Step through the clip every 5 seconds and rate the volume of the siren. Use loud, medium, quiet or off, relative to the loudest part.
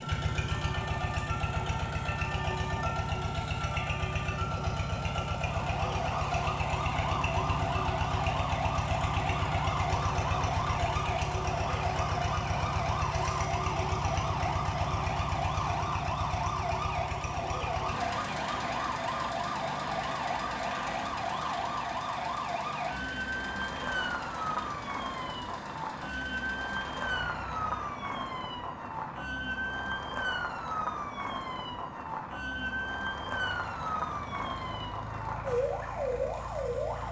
medium, loud, loud, loud, loud, loud, loud, loud.